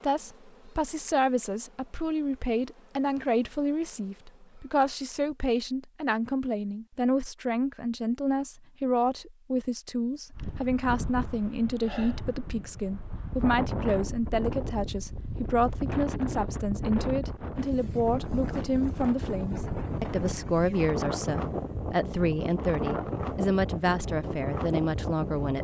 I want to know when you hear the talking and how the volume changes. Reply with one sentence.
The talking can be heard from 0.0 to 25.5 s, at a steady volume.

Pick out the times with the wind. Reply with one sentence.
The wind can be heard from 10.3 to 25.5 s.